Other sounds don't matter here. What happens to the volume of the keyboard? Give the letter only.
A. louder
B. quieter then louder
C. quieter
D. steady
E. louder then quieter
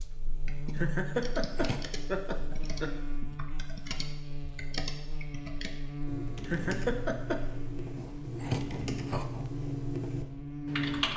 A.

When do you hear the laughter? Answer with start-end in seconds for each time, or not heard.
0.8-3.0, 6.5-7.4.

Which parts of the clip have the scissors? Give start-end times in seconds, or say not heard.
1.4-1.9, 8.0-9.6.